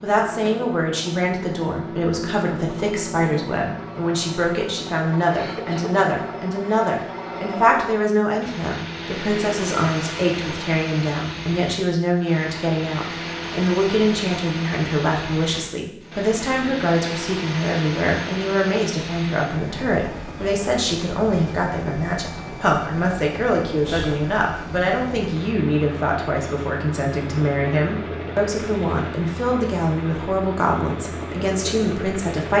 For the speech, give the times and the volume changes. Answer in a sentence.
The speech can be heard from 0.0 to 32.5 s, at a steady volume.